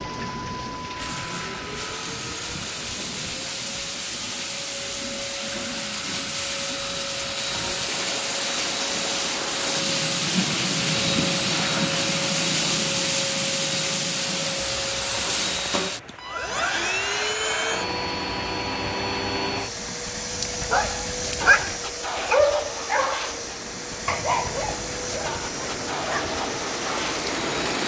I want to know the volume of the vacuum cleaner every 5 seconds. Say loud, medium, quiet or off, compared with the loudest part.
medium, loud, loud, loud, medium, medium.